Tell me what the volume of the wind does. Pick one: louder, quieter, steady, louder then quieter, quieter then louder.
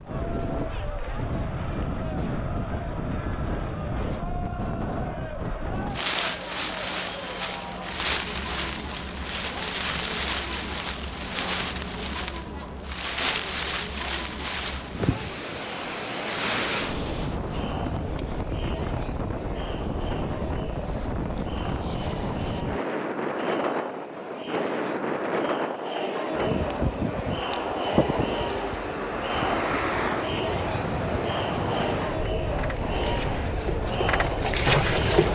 steady.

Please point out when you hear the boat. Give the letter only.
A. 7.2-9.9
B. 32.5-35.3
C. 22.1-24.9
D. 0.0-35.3
B.